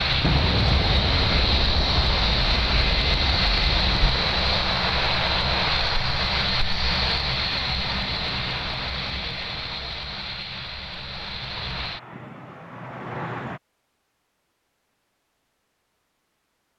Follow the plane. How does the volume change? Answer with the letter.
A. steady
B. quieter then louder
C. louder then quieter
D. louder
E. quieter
E.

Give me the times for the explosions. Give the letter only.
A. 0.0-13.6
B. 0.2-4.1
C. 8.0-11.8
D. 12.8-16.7
B.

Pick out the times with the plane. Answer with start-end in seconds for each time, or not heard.
0.0-13.6.